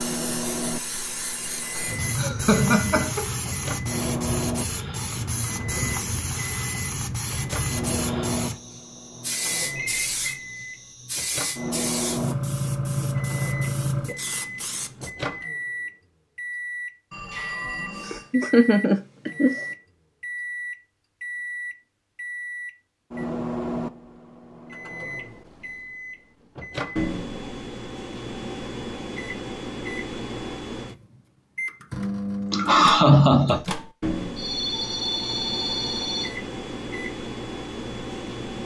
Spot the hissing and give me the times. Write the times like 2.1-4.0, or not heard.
0.0-15.1.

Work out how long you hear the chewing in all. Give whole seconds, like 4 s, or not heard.
not heard.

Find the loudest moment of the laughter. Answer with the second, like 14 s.
33 s.